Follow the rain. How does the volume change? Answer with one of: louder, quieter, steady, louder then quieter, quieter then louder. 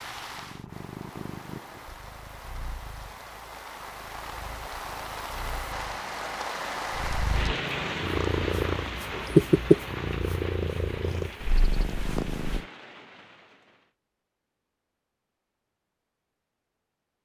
louder then quieter.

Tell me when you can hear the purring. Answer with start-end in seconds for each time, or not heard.
0.0-12.7.